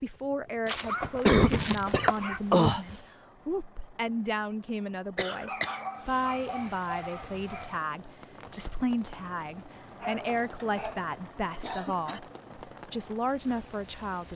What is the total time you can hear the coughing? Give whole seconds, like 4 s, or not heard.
5 s.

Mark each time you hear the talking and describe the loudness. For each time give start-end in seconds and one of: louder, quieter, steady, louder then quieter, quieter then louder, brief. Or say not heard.
0.0-14.3 steady.